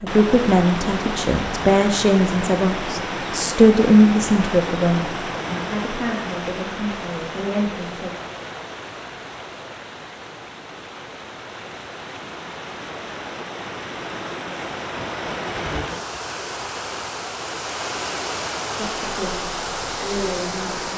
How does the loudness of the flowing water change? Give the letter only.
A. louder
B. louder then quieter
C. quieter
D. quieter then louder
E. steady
D.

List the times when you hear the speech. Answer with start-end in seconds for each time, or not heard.
0.0-8.1, 18.8-20.9.